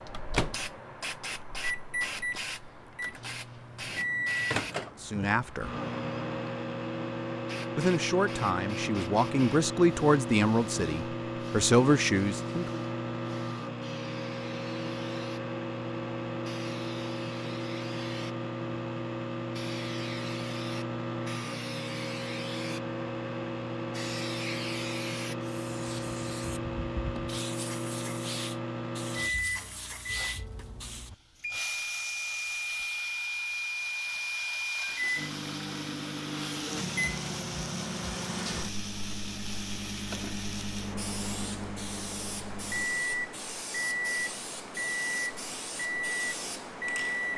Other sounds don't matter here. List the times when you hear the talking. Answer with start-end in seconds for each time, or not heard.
5.0-5.8, 7.8-12.8.